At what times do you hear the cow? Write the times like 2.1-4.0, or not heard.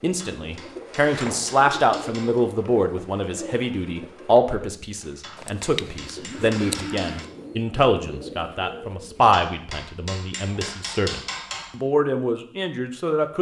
5.3-7.2.